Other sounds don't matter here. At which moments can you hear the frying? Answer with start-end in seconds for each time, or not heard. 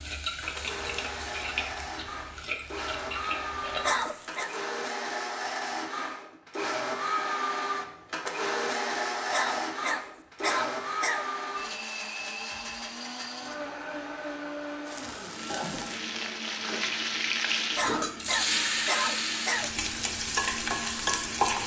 0.0-4.5, 14.8-21.6.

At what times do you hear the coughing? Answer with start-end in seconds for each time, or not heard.
3.8-4.5, 9.3-11.2, 17.8-19.7.